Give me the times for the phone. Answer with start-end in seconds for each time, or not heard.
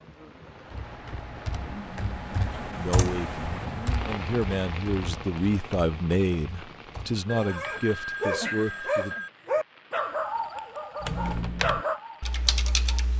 7.2-9.3.